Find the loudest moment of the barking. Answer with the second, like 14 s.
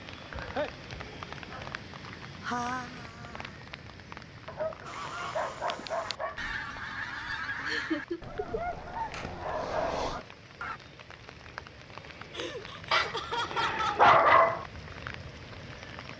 14 s.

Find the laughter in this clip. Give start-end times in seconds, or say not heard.
2.4-3.5, 7.6-8.6, 12.3-14.2.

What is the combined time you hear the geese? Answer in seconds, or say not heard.
6 s.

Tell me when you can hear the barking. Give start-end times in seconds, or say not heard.
0.3-1.8, 4.5-6.5, 9.0-10.3, 12.9-14.7.